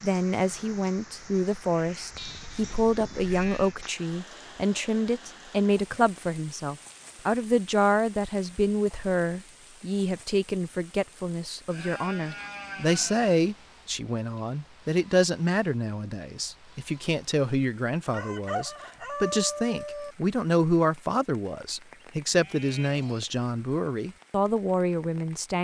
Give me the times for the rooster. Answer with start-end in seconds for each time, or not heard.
18.1-20.1.